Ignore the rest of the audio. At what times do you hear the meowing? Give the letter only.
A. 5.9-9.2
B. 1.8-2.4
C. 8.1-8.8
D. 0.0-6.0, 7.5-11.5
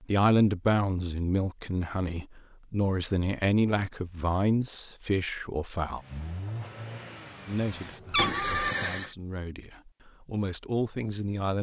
C.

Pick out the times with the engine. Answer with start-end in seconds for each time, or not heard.
5.9-9.2.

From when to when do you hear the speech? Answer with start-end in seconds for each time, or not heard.
0.0-6.0, 7.5-11.5.